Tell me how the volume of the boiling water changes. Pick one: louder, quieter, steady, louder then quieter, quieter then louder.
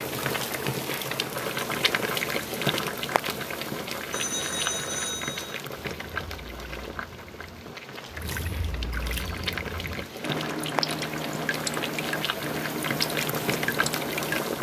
quieter then louder.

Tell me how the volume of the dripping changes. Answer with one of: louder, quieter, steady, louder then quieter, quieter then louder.
louder.